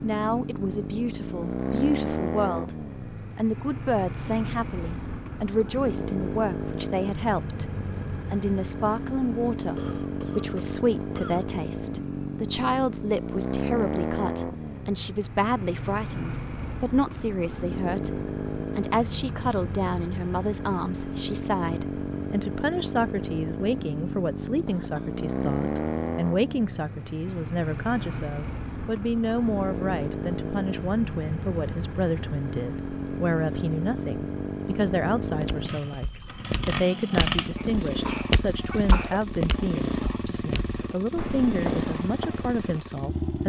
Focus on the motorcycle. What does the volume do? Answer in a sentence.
The loudness of the motorcycle stays about the same.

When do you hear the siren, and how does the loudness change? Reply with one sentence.
You can't hear the siren here.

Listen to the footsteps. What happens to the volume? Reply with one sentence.
The loudness of the footsteps goes up, then down.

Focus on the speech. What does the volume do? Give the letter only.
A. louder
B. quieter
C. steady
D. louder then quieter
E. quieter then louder
C.